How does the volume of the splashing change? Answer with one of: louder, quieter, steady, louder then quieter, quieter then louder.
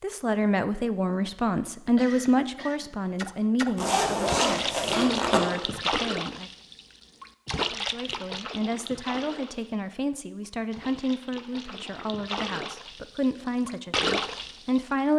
quieter then louder.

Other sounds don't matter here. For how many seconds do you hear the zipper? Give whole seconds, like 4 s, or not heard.
2 s.